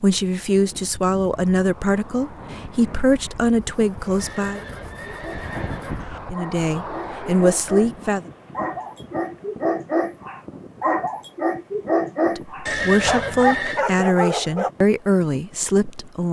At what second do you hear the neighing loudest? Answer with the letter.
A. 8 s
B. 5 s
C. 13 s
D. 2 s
C.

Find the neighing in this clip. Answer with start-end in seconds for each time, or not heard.
4.2-6.2, 12.7-13.8.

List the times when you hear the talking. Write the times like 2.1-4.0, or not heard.
0.0-4.6, 6.3-8.2, 12.2-16.2.